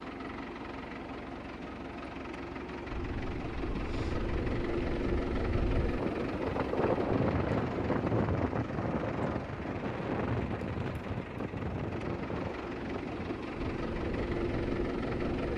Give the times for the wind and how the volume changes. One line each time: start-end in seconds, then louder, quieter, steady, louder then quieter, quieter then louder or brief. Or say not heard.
2.9-15.4 louder then quieter.